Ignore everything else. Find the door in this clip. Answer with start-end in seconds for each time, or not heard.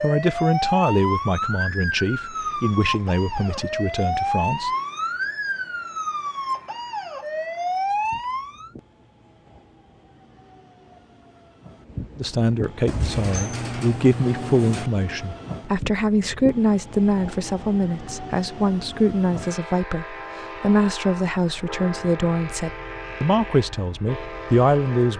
12.8-14.9.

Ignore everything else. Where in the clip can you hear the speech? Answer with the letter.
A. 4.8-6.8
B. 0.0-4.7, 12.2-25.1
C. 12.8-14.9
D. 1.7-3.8
B.